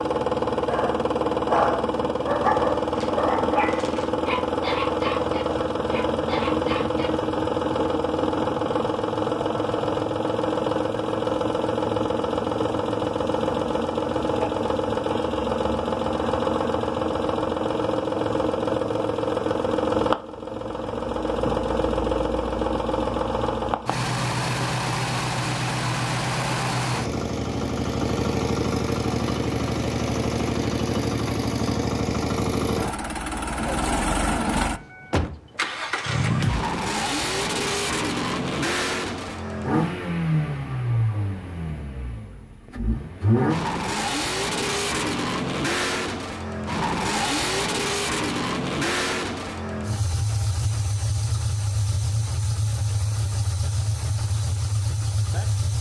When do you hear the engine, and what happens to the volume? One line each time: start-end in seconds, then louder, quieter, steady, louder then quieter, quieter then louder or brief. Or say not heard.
0.0-55.7 steady.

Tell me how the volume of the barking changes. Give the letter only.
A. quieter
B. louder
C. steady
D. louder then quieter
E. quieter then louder
A.